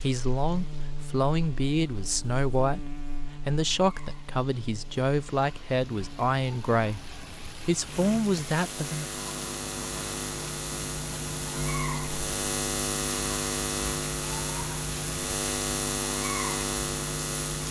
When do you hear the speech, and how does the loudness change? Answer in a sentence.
The speech can be heard from 0.0 to 9.1 s, at a steady volume.